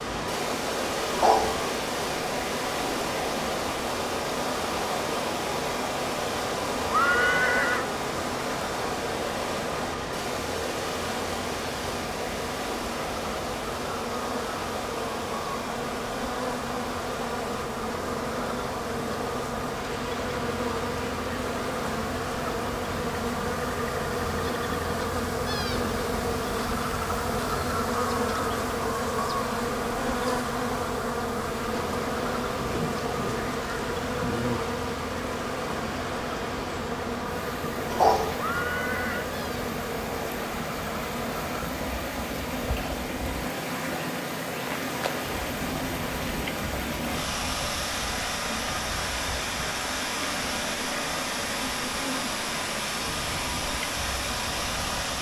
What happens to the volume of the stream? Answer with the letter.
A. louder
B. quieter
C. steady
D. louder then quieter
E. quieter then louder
E.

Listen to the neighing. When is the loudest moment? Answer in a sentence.
The volume of the neighing peaks at 7 seconds.